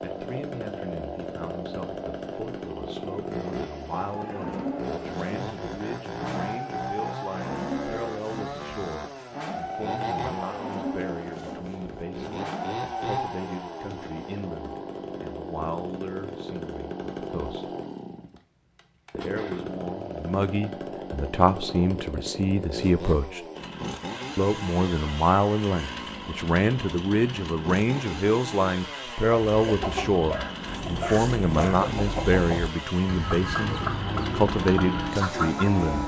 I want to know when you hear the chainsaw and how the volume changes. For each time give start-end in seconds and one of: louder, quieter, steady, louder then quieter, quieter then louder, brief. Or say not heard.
0.0-36.0 steady.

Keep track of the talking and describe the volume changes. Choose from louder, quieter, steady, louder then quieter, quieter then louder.
louder.